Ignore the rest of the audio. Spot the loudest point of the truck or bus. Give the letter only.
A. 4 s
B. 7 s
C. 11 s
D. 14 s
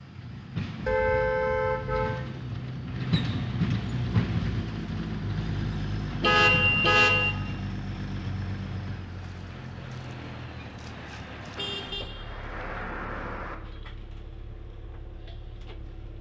A.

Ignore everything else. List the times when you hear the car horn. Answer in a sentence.
The car horn can be heard from 0.8 to 2.2 s, from 6.2 to 7.3 s and from 11.6 to 13.6 s.